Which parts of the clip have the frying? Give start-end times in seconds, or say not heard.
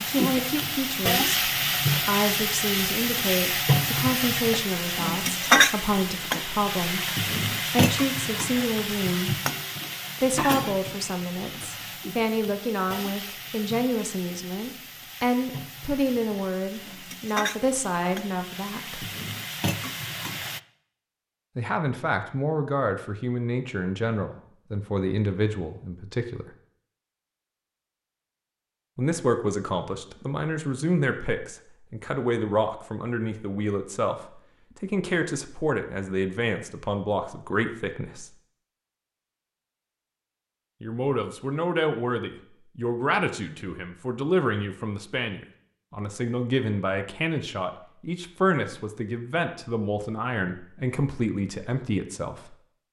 0.0-20.6.